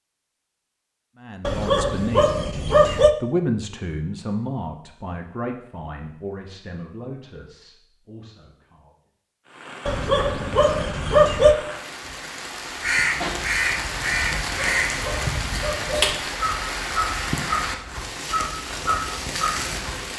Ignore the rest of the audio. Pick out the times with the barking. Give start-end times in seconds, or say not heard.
1.4-3.1, 9.8-11.6, 14.3-16.1.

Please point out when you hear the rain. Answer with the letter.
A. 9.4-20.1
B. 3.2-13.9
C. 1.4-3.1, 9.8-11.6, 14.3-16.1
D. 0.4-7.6
A.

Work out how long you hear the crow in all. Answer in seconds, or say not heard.
7 s.